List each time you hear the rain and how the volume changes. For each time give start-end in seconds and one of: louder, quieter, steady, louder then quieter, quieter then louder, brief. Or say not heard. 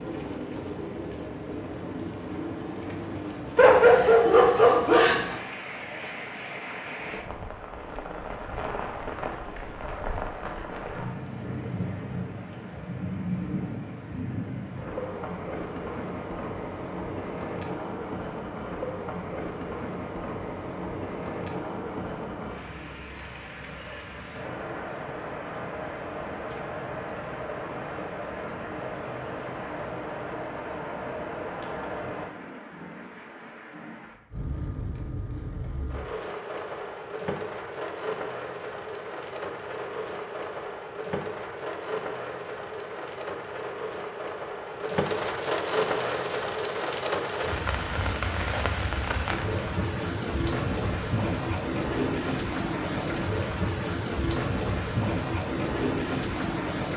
0.0-56.9 louder.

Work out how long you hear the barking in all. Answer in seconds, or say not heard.
2 s.